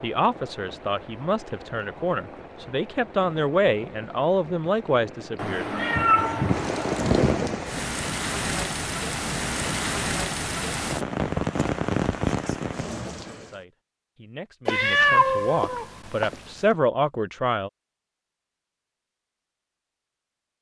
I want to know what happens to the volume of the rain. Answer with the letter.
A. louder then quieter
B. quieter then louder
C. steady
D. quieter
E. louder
E.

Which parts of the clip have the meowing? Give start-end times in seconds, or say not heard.
5.3-7.4, 14.7-16.4.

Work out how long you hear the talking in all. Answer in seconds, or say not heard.
11 s.